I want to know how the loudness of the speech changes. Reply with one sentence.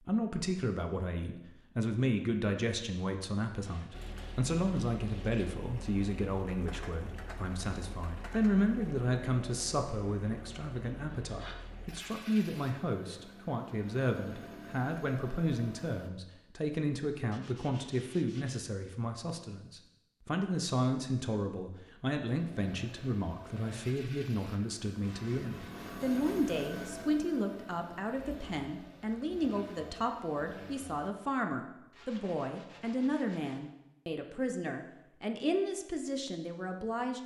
The loudness of the speech stays about the same.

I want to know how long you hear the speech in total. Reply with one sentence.
You can hear the speech for 37 seconds altogether.